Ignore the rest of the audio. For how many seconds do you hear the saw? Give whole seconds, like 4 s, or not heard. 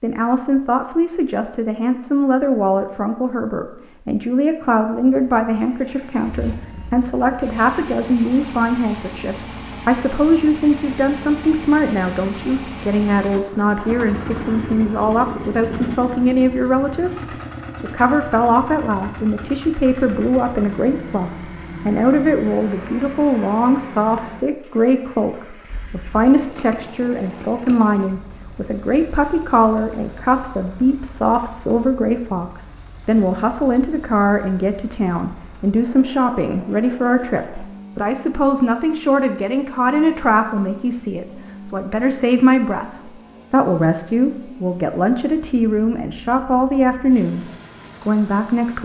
not heard.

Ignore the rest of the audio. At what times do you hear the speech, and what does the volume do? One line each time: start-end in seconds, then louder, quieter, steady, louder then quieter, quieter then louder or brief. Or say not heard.
0.0-17.2 steady
17.8-48.8 steady.